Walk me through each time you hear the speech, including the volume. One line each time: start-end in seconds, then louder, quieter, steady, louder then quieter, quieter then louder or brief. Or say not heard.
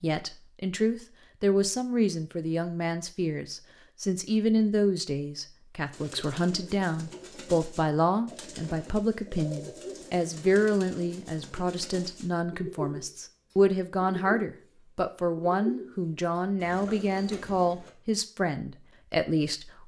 0.0-19.8 steady.